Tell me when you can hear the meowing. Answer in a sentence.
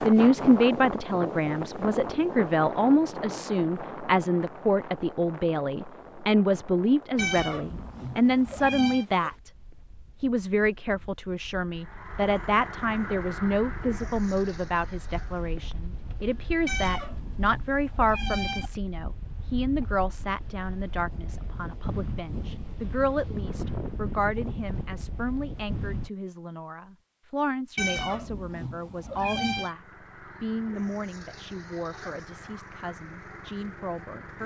You can hear the meowing from 7.2 to 9.1 s, from 16.6 to 18.7 s and from 27.8 to 29.8 s.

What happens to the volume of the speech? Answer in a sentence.
The loudness of the speech goes down.